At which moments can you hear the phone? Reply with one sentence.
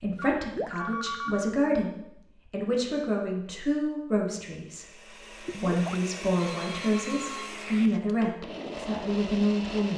You can hear the phone from 0.1 to 1.5 s and from 6.4 to 7.6 s.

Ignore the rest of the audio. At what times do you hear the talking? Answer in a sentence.
You can hear the talking from 0.0 to 9.9 s.